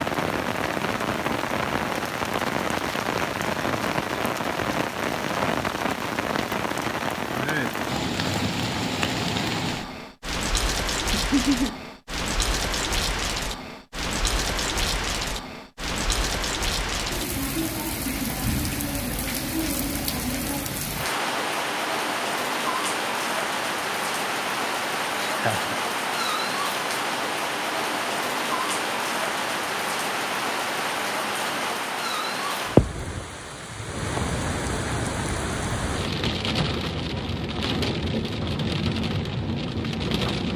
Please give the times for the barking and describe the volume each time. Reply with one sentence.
You can't hear the barking here.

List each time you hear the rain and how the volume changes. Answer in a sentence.
You can hear the rain from 0.0 to 40.5 s, at a steady volume.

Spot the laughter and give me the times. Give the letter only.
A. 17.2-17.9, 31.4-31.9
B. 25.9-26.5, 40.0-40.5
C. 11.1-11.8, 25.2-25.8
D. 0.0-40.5
C.